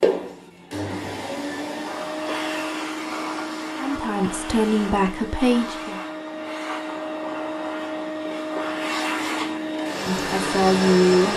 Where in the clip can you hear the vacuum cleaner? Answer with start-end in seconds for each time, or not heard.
0.0-11.3.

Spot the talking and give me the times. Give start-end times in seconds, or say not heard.
3.8-6.0, 10.1-11.3.